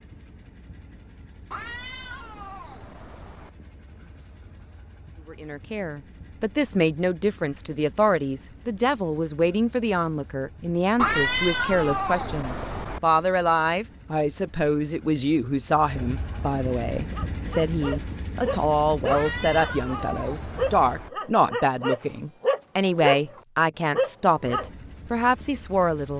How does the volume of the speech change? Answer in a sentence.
The loudness of the speech stays about the same.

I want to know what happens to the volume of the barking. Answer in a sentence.
The volume of the barking goes up.